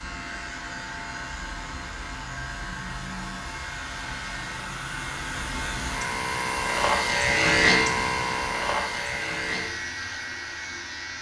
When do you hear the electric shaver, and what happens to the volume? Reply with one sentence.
You can hear the electric shaver from 0.0 to 11.1 s, getting louder then quieter.